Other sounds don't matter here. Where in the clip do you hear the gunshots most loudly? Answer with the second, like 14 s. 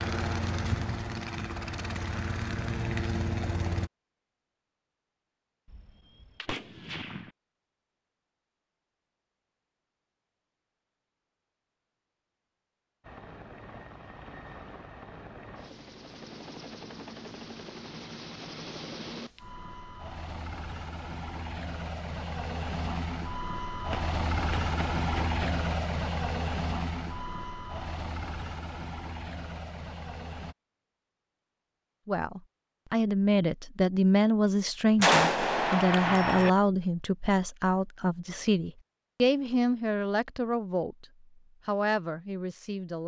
35 s.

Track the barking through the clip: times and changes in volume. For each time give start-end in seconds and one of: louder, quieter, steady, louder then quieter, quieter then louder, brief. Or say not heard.
not heard.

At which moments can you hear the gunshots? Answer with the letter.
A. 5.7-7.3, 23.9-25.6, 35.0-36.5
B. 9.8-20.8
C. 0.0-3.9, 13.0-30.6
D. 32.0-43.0
A.